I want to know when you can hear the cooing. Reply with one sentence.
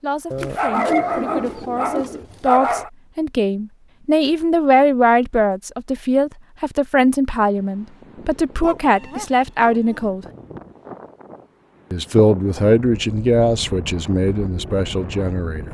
The cooing can be heard from 0.7 to 2.2 s.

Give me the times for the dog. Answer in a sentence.
The dog can be heard from 0.3 to 2.9 s and from 8.6 to 10.2 s.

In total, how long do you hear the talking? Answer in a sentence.
You can hear the talking for 14 seconds altogether.